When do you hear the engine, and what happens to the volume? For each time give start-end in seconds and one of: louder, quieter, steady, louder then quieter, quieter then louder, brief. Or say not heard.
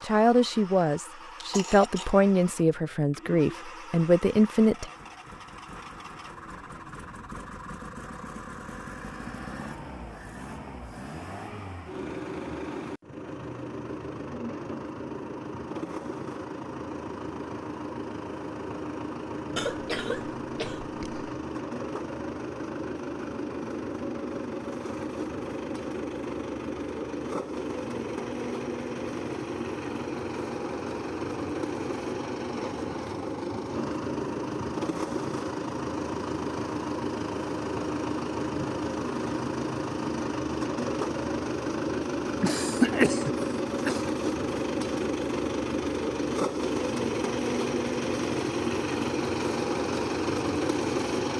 0.0-51.3 louder.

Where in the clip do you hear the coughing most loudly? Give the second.
43 s.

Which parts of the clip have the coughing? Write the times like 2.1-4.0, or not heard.
1.4-2.1, 19.6-21.2, 42.4-44.0.